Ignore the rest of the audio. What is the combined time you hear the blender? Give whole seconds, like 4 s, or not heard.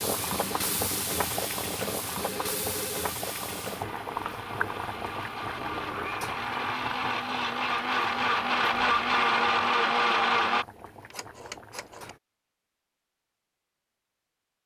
11 s.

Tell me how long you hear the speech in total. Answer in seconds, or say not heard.
not heard.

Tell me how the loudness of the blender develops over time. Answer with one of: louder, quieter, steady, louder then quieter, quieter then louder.
louder.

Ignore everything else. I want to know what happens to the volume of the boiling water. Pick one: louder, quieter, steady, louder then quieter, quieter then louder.
quieter.